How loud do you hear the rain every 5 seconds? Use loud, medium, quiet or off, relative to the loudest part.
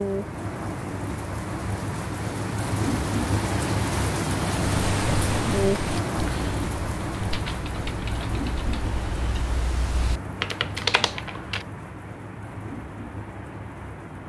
loud, loud, medium.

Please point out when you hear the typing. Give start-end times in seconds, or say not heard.
4.6-11.7.